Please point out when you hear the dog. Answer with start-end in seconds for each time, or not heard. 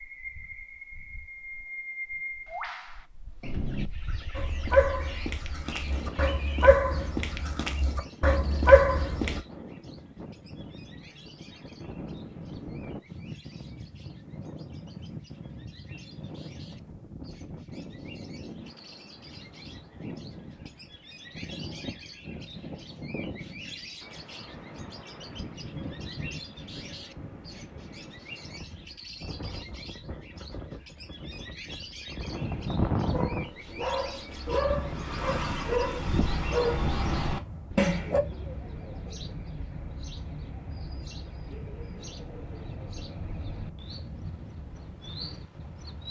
4.3-9.4, 33.1-38.2.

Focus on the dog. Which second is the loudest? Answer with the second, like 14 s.
9 s.